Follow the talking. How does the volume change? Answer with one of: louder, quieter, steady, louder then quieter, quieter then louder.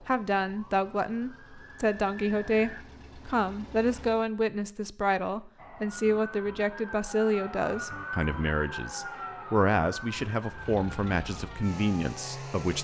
steady.